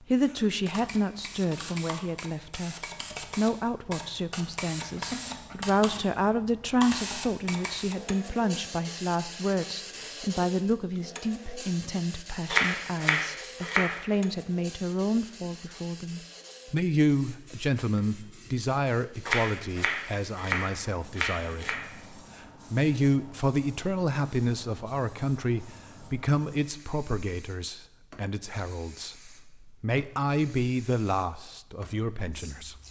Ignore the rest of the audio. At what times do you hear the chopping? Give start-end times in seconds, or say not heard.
12.5-14.0, 19.2-21.9.